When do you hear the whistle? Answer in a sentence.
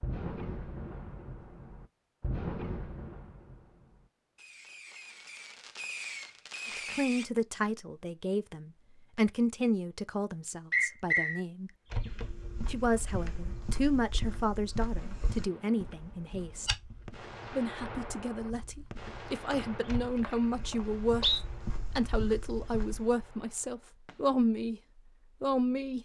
You can hear the whistle from 10.7 to 11.4 s and from 19.5 to 21.4 s.